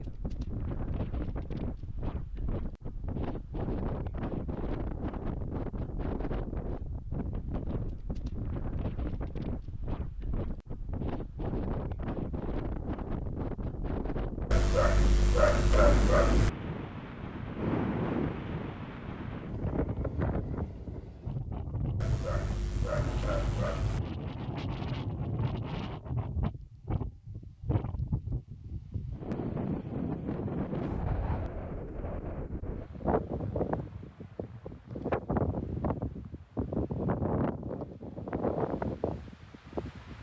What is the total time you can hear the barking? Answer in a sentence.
The barking can be heard for 4 seconds in total.